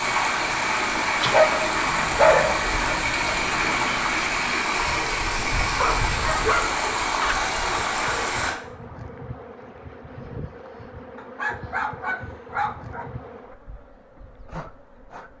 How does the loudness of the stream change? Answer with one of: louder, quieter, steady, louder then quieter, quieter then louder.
steady.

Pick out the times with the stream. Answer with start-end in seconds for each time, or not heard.
0.0-8.6.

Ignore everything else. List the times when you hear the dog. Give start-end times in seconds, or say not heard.
1.2-2.6, 5.8-7.4, 11.2-13.6.